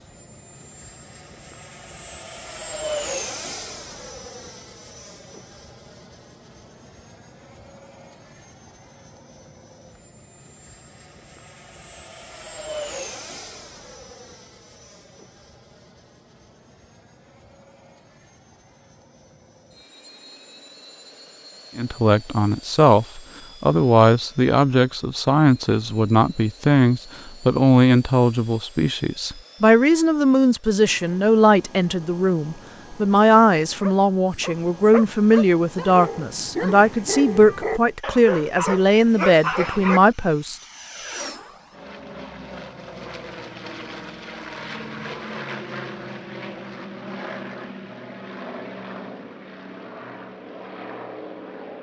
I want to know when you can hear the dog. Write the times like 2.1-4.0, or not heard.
33.8-40.0.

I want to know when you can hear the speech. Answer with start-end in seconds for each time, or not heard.
21.8-40.5.